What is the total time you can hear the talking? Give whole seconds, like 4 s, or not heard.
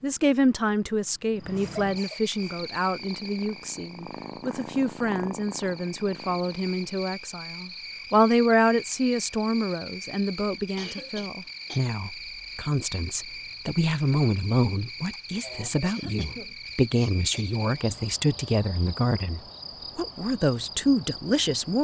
22 s.